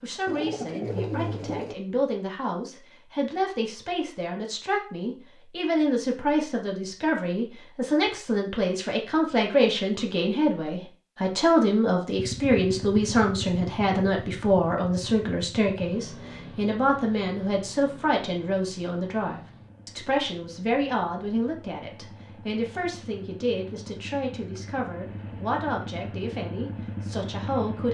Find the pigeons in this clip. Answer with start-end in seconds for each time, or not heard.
0.2-1.8.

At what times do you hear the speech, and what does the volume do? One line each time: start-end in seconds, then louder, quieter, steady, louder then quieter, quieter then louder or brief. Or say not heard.
0.0-27.8 louder then quieter.